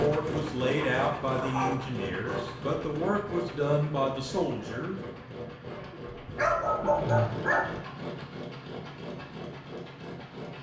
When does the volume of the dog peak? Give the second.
7 s.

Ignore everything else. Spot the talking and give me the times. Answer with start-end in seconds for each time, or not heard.
0.0-5.0.